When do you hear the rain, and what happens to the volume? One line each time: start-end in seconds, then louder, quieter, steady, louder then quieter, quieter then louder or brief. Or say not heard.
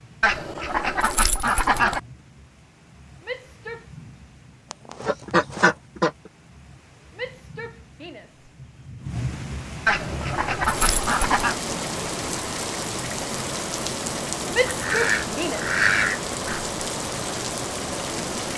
0.0-18.5 louder.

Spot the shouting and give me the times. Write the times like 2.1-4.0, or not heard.
3.2-3.9, 7.2-8.5, 14.5-15.8.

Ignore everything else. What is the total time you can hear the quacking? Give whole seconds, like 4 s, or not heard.
7 s.